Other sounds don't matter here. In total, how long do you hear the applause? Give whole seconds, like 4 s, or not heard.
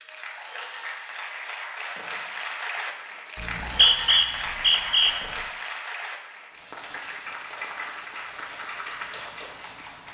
10 s.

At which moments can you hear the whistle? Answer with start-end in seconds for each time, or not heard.
3.4-5.2.